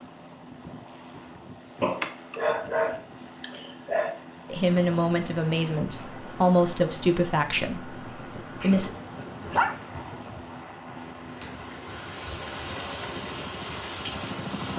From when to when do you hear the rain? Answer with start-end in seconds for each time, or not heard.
4.8-14.7.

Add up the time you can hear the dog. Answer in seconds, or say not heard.
4 s.